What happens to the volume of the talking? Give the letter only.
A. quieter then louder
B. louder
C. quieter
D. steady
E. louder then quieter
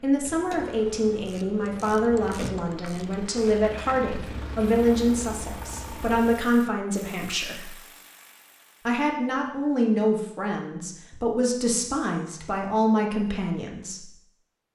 D.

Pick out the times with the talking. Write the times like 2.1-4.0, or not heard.
0.0-7.7, 8.8-14.2.